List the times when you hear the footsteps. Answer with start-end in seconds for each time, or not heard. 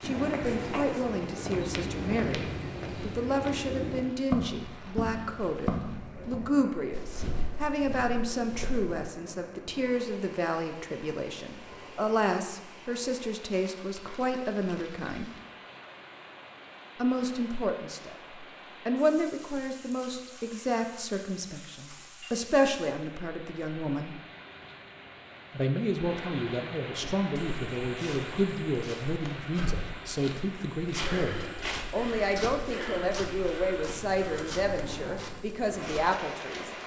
0.0-9.1, 27.0-36.0.